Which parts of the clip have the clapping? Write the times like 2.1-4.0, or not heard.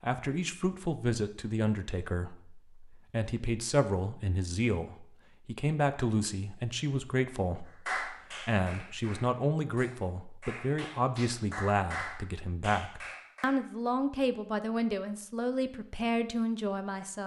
7.8-13.6.